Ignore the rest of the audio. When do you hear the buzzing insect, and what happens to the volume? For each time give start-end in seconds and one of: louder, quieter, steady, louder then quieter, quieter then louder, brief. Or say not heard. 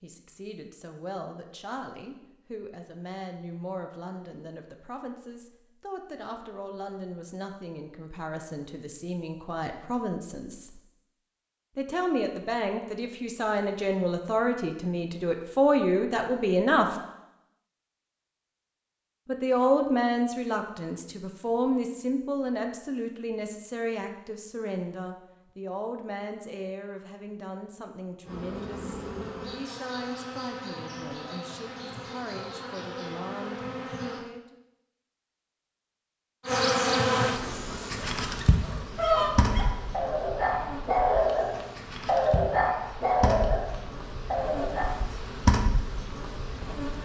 28.2-34.2 steady
36.5-47.0 quieter then louder.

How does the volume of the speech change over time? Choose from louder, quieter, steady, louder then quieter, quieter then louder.
louder then quieter.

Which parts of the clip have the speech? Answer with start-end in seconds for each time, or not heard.
0.0-10.8, 11.8-16.9, 19.2-34.5.